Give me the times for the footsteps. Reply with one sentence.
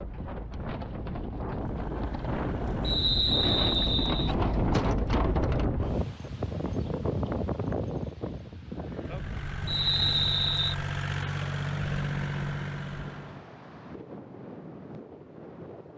The footsteps can't be heard in this clip.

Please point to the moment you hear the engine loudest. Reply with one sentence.
The loudest moment of the engine is at 12 seconds.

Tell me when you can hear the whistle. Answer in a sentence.
The whistle can be heard from 2.8 to 4.3 s and from 9.7 to 10.8 s.